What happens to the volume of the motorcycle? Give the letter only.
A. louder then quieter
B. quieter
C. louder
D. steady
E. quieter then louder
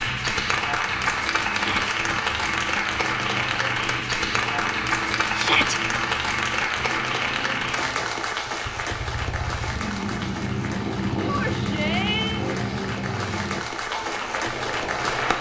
C.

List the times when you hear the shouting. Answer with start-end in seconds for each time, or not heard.
1.5-1.9, 5.3-5.8, 11.2-12.4.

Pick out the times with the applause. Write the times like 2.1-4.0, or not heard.
0.0-15.3.